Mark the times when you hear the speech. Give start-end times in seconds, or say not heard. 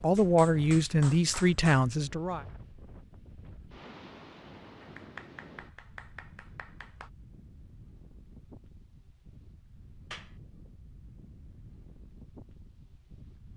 0.0-2.5.